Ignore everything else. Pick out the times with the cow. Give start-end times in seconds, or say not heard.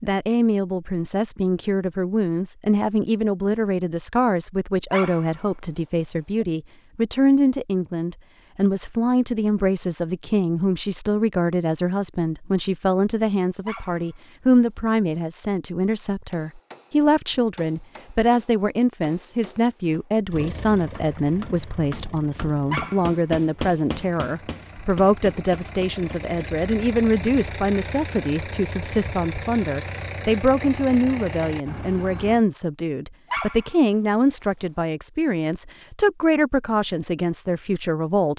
not heard.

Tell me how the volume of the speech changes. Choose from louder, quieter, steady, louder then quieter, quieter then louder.
steady.